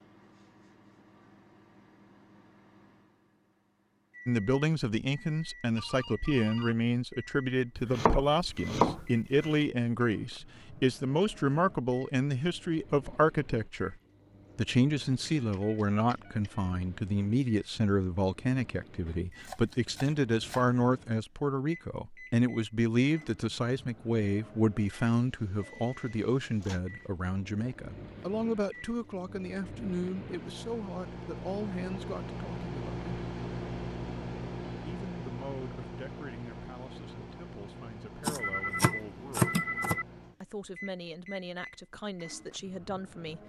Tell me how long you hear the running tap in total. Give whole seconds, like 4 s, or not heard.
not heard.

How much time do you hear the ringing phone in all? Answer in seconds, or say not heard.
4 s.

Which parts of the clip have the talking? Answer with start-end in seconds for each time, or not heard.
4.2-13.9, 14.6-33.0, 34.9-39.5, 40.4-43.4.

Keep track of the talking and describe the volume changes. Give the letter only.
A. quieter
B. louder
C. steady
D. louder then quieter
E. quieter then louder
A.